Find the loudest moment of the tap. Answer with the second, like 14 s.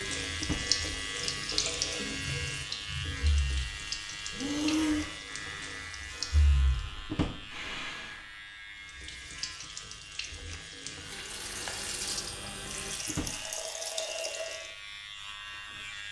1 s.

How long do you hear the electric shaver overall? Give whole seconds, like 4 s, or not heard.
16 s.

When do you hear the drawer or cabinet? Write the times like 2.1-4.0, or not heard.
0.4-0.8, 7.0-7.6, 13.1-13.7.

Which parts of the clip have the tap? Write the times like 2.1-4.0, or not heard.
0.0-6.8, 8.8-14.7.